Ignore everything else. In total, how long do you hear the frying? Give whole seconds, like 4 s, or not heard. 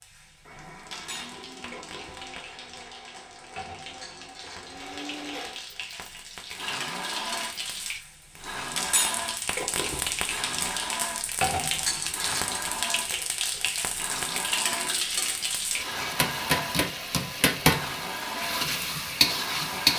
20 s.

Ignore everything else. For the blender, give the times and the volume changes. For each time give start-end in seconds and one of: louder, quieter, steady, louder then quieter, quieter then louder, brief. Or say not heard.
0.4-19.9 louder.